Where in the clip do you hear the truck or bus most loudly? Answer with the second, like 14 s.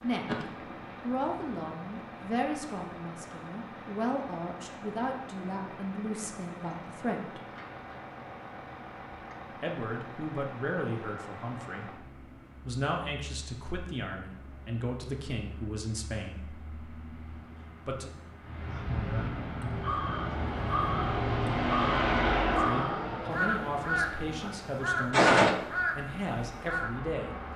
22 s.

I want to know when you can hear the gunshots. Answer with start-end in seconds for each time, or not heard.
0.2-1.6, 25.1-25.6.